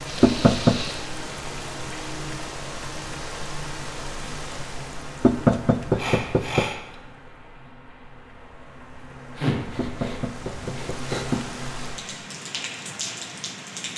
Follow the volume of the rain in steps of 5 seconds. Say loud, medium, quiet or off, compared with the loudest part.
loud, medium, loud.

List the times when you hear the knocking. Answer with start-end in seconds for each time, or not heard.
0.2-0.8, 5.2-6.7, 9.8-11.5.